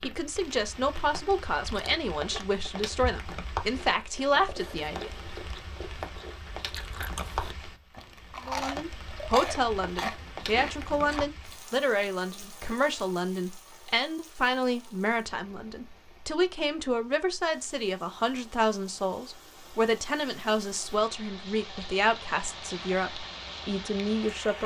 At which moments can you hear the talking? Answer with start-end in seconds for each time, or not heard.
0.0-5.1, 8.4-24.6.